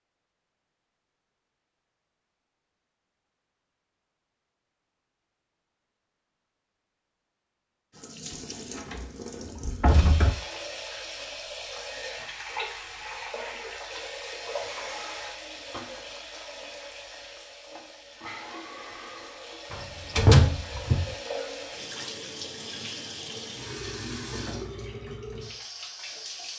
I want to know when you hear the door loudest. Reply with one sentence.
The loudest moment of the door is at 20 seconds.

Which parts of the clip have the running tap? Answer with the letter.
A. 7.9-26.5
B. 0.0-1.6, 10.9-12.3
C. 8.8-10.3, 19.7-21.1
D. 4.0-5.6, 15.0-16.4
A.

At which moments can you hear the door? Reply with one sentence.
You can hear the door from 8.8 to 10.3 s and from 19.7 to 21.1 s.